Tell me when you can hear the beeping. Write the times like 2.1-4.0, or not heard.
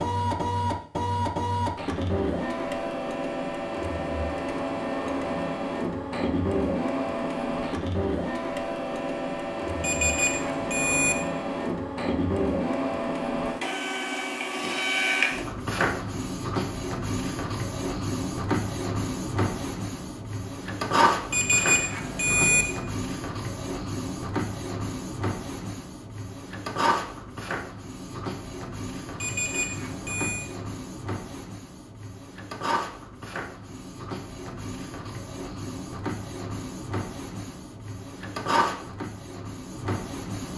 9.8-11.2, 21.3-22.6, 29.1-30.5.